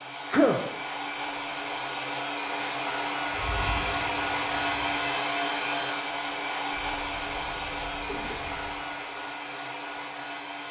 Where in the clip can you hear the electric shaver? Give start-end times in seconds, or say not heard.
3.3-5.0.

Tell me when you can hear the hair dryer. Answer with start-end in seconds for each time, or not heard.
0.0-10.6.